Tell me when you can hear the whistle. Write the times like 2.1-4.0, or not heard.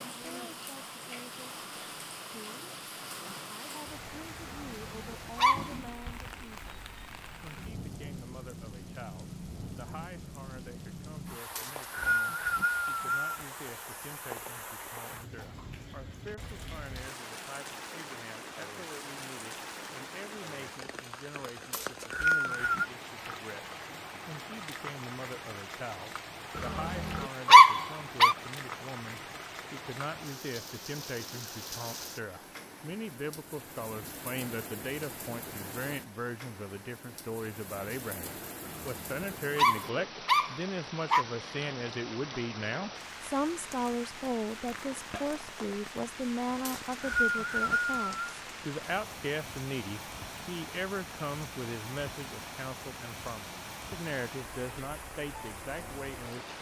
11.6-13.3, 21.7-22.9, 46.6-48.4.